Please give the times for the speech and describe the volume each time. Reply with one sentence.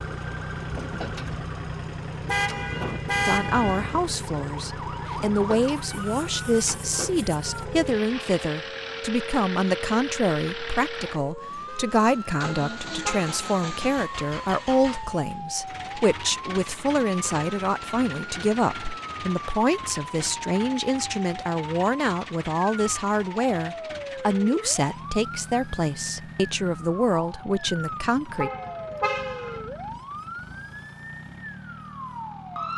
You can hear the speech from 3.2 to 28.5 s, at a steady volume.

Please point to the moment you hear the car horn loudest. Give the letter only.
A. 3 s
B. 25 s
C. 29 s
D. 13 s
A.